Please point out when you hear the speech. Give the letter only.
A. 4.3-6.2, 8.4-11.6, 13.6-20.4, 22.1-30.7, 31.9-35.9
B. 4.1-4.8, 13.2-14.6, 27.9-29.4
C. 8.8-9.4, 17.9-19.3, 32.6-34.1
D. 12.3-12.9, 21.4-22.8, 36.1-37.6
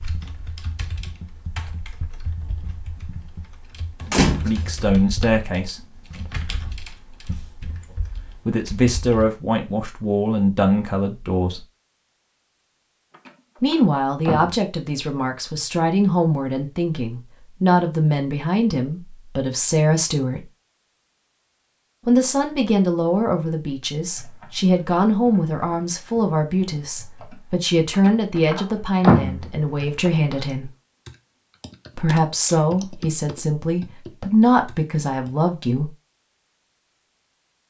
A.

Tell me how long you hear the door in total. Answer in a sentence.
The door can be heard for 4 seconds in total.